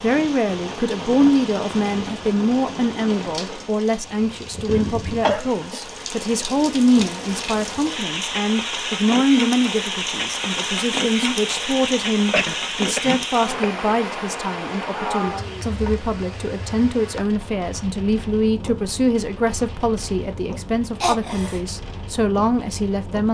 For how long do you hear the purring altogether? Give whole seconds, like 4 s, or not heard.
not heard.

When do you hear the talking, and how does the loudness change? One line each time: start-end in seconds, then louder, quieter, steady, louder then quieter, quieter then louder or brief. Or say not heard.
0.0-23.2 steady.